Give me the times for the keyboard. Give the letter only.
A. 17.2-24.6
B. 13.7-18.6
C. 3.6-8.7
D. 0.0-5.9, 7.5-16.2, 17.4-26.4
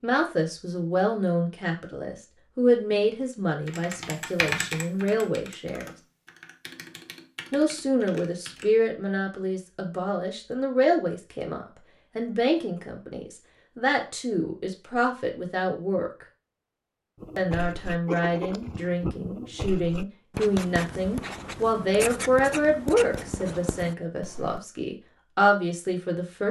C.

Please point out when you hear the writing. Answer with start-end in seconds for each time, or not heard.
17.2-24.6.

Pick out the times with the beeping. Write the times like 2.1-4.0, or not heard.
not heard.